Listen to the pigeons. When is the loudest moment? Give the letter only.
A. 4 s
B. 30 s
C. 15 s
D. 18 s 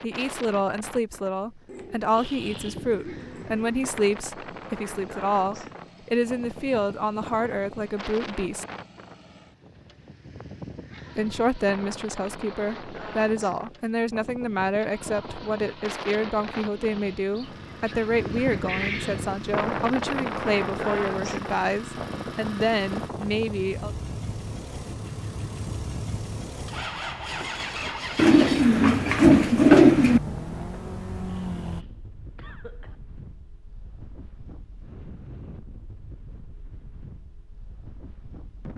B.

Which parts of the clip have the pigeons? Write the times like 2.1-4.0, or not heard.
1.6-4.2, 17.3-19.4, 28.1-30.2.